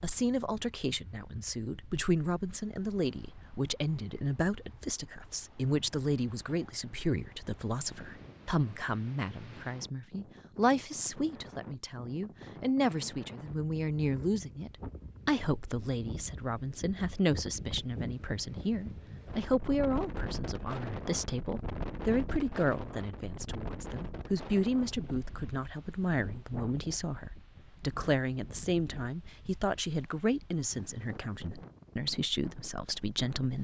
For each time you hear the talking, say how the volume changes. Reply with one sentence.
The talking can be heard from 0.0 to 33.5 s, at a steady volume.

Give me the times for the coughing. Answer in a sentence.
The coughing can't be heard in this clip.